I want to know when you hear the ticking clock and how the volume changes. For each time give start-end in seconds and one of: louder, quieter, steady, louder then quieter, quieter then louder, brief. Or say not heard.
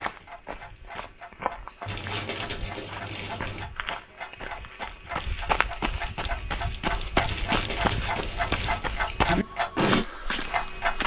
0.0-11.0 louder.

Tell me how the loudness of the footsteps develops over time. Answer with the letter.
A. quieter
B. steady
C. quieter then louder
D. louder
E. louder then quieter
D.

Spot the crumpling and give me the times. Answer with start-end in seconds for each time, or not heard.
1.9-3.6, 7.2-8.9.